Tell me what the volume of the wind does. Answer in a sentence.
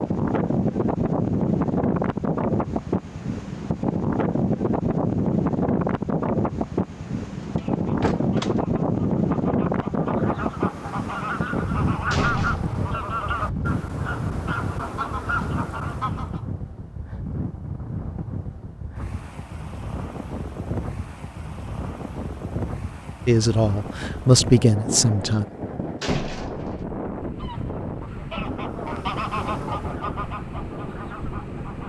The volume of the wind goes down.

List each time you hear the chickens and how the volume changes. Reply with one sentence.
The chickens can be heard from 7.5 to 16.4 s, getting louder; and from 27.3 to 31.8 s, getting louder then quieter.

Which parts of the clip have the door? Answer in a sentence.
You can hear the door from 7.5 to 8.6 s, from 12.1 to 12.8 s and from 26.0 to 26.8 s.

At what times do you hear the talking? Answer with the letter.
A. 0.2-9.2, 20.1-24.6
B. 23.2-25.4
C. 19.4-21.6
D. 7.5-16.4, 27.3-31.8
B.